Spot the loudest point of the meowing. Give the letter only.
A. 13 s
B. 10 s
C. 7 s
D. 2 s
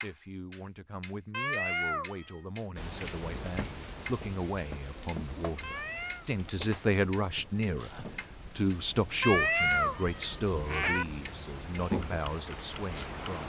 B.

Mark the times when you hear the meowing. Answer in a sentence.
The meowing can be heard from 1.3 to 2.4 s, from 5.6 to 6.2 s and from 9.2 to 11.1 s.